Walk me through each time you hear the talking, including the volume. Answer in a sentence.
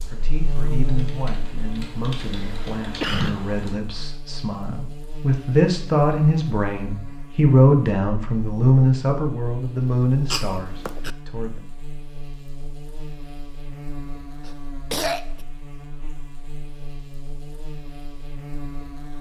You can hear the talking from 0.1 to 11.7 s, getting louder then quieter.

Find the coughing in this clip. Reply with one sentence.
You can hear the coughing from 2.3 to 3.4 s, from 10.3 to 11.1 s and from 14.4 to 15.4 s.